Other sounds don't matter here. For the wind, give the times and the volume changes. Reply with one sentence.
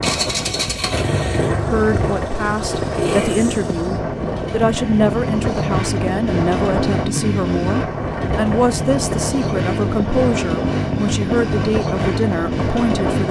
You can hear the wind from 0.0 to 13.2 s, at a steady volume.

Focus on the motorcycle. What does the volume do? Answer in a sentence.
The volume of the motorcycle stays about the same.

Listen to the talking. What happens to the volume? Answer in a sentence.
The volume of the talking stays about the same.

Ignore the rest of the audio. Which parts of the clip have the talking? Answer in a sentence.
You can hear the talking from 1.7 to 13.2 s.